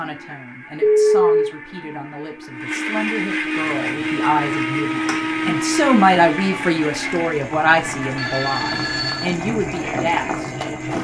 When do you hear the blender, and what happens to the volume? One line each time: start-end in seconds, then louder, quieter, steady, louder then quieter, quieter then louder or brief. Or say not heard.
0.0-10.9 louder then quieter.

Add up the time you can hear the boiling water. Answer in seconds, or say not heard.
7 s.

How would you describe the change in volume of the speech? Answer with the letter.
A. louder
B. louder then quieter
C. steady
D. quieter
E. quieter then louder
B.